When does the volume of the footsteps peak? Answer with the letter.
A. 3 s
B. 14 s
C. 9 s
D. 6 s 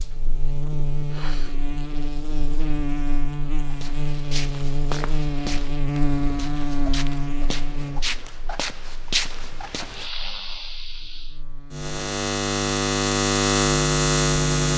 C.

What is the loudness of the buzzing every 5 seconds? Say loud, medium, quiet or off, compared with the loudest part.
medium, medium, loud.